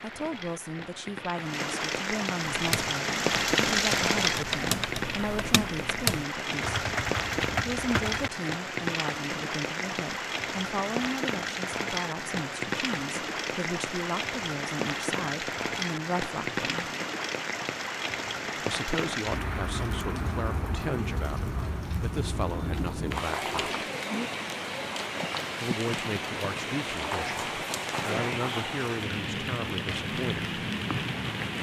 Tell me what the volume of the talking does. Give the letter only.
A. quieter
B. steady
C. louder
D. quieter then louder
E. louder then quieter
B.